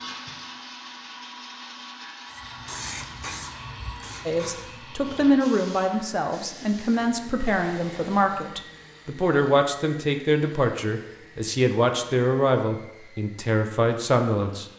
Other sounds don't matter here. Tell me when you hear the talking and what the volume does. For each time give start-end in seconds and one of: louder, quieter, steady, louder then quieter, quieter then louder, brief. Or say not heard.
4.2-14.7 steady.